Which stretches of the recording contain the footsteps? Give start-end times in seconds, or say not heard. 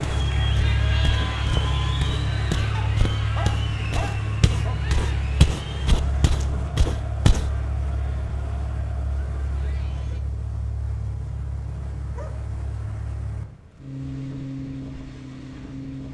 0.0-7.5.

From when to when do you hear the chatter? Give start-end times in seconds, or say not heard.
0.0-10.2.